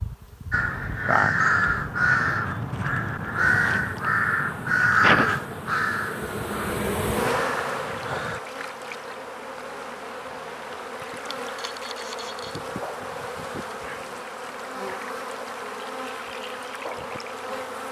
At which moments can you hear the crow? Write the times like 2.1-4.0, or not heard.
0.5-8.4.